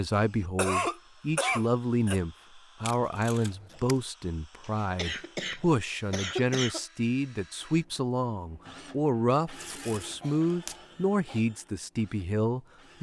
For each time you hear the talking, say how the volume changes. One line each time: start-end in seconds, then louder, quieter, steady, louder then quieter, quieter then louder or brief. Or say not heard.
0.0-12.9 steady.